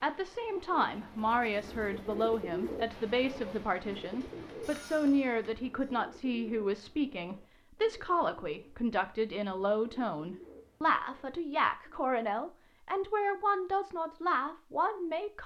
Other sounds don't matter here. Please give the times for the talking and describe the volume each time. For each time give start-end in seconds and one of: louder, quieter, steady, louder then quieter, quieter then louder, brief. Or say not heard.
0.0-15.4 steady.